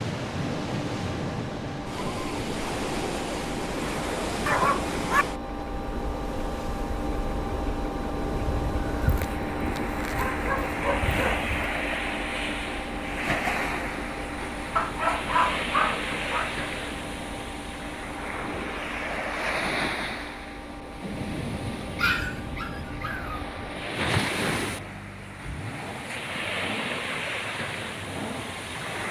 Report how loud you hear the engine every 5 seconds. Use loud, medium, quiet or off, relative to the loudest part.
loud, loud, loud, medium, medium, medium.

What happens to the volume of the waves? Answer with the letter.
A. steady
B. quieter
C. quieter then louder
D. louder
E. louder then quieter
A.